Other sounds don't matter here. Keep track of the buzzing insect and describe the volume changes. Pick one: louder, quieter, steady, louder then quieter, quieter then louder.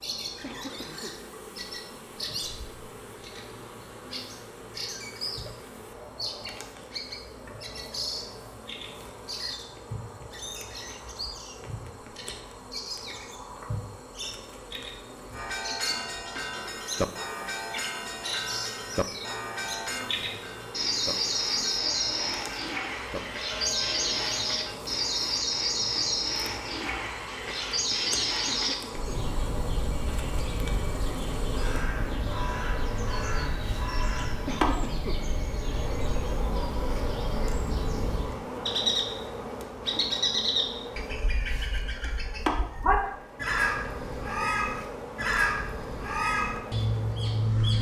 louder.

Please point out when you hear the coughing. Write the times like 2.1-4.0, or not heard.
0.4-1.2, 28.6-29.1, 34.5-35.2.